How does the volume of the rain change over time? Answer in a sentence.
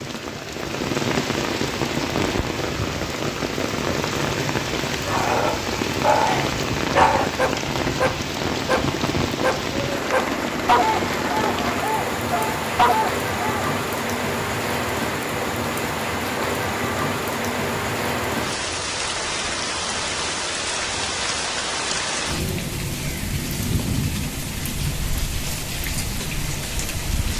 The loudness of the rain stays about the same.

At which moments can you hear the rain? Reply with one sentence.
The rain can be heard from 0.0 to 27.3 s.